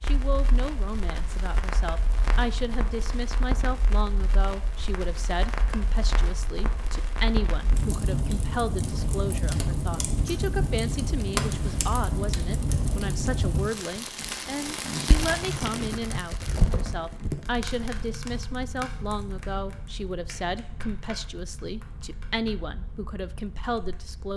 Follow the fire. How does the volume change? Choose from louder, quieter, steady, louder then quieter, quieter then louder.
louder then quieter.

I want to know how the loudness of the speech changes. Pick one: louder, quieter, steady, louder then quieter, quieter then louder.
steady.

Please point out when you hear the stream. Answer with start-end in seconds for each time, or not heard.
not heard.